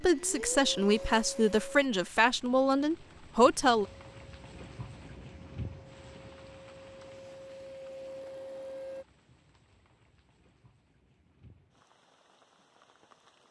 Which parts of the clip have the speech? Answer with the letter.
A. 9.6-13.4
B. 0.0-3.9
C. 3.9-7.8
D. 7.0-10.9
B.